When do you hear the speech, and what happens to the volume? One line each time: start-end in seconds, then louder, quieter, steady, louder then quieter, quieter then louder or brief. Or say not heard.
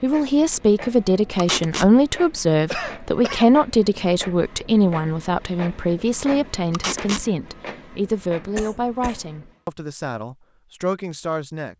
0.0-11.7 quieter.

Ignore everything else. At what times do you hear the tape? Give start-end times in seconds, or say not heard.
1.4-1.9, 6.7-7.2.